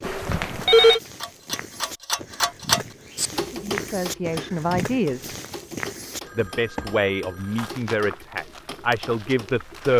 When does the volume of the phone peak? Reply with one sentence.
The volume of the phone peaks at 1 second.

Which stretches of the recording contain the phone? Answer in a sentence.
The phone can be heard from 0.0 to 1.0 s and from 6.2 to 7.8 s.